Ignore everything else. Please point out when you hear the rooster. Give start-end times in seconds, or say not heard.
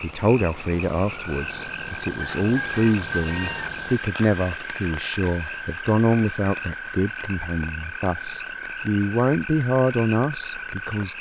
2.2-3.8.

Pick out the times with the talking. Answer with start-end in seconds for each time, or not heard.
0.0-11.1.